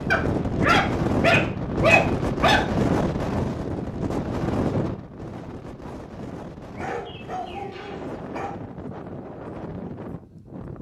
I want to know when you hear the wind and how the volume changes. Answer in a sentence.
You can hear the wind from 0.0 to 10.7 s, getting quieter.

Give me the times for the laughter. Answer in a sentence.
You can't hear the laughter here.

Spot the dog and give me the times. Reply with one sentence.
The dog can be heard from 0.1 to 2.7 s and from 6.8 to 8.6 s.